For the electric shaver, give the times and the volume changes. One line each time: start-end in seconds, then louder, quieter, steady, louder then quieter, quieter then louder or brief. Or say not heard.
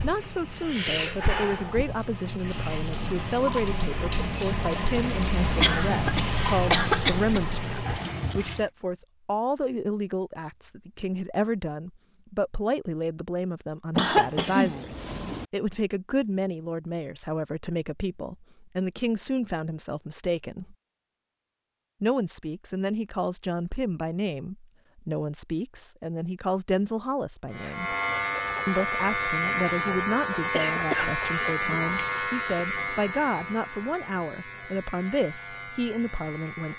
27.5-36.7 quieter.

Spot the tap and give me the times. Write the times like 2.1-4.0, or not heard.
0.0-8.7.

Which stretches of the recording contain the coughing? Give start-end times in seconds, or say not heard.
5.6-7.5, 13.9-15.4, 30.5-31.2.